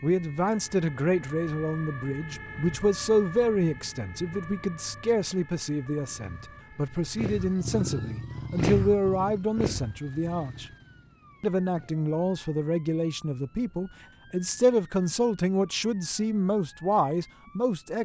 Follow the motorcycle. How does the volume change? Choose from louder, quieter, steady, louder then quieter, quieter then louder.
louder then quieter.